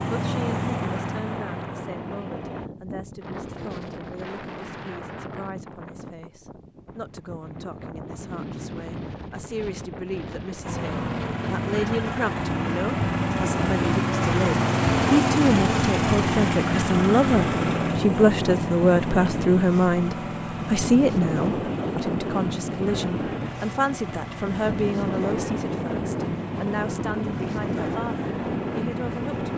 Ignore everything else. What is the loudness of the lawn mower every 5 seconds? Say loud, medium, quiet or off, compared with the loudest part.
medium, off, loud, loud, medium, medium.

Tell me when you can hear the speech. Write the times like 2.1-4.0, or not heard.
0.0-29.5.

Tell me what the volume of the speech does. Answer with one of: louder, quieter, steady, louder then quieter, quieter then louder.
louder then quieter.